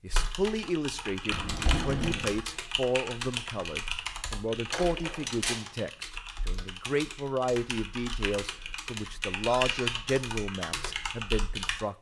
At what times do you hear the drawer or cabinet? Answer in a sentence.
The drawer or cabinet can be heard from 1.3 to 2.4 s, from 4.7 to 5.7 s and from 9.5 to 9.9 s.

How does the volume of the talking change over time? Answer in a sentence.
The loudness of the talking stays about the same.